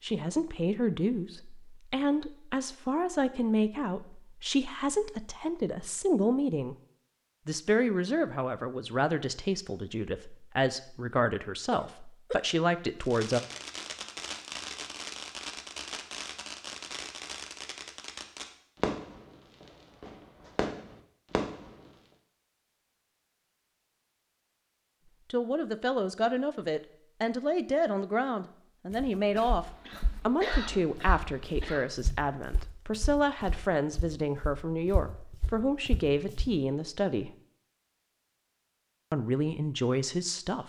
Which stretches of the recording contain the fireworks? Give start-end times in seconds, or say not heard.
13.0-22.0.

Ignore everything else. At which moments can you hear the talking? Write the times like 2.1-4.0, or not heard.
0.0-6.8, 7.5-13.4, 25.3-37.3, 39.1-40.6.